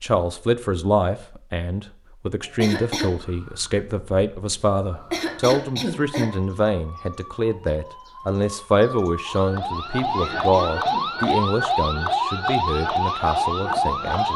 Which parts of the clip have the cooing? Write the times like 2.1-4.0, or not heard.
not heard.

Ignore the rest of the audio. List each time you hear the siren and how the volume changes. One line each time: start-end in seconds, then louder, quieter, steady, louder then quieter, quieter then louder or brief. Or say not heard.
3.1-14.3 louder.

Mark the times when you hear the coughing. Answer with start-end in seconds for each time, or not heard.
2.5-3.1, 5.0-6.3, 10.1-11.4.